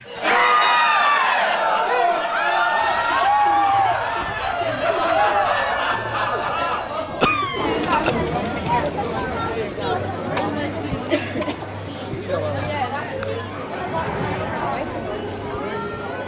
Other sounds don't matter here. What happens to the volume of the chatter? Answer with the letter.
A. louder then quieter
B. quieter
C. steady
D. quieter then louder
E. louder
B.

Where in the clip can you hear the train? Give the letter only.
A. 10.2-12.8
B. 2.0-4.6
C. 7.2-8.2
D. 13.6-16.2
D.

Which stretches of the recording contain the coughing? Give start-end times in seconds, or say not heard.
7.2-8.2.